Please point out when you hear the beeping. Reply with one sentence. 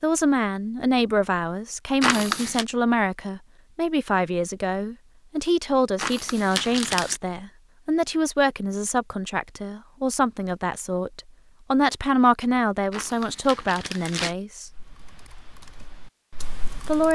The beeping can't be heard in this clip.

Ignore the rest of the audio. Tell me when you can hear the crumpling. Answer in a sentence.
You can hear the crumpling from 2.0 to 2.6 s, from 6.0 to 7.2 s and from 12.9 to 14.3 s.